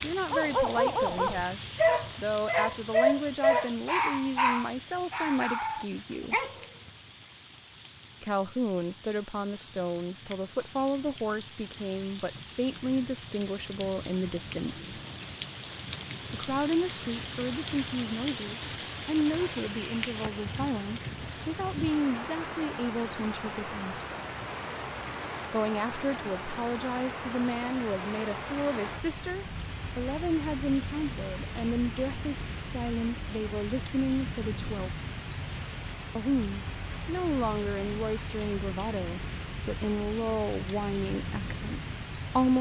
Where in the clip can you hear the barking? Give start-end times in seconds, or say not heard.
0.3-6.9.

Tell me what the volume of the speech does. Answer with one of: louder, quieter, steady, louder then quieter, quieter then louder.
steady.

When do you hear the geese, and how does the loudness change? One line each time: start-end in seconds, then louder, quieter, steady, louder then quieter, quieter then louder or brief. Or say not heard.
not heard.